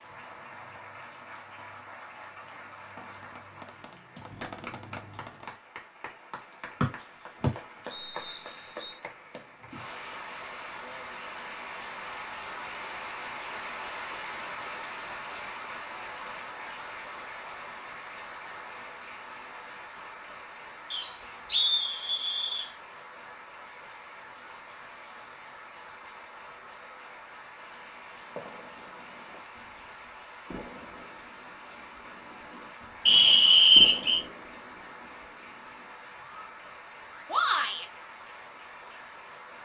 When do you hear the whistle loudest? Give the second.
34 s.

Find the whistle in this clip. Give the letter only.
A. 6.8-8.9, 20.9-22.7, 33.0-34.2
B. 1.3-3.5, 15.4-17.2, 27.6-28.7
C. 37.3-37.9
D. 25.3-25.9
A.